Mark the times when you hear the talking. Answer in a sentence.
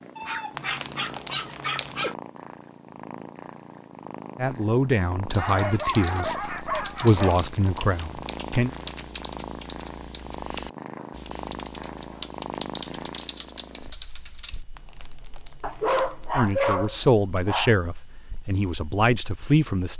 The talking can be heard from 4.3 to 8.7 s and from 16.4 to 19.9 s.